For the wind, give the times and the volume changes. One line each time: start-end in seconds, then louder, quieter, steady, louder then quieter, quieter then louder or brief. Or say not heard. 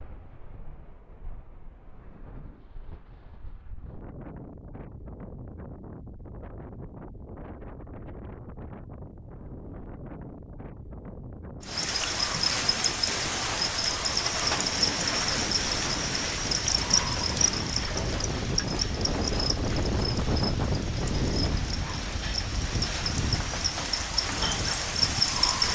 0.0-25.6 louder.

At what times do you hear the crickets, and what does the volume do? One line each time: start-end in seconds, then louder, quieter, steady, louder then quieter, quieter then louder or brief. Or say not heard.
11.6-25.6 quieter then louder.